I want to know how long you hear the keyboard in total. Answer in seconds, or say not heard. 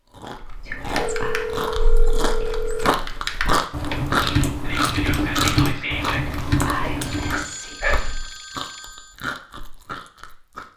7 s.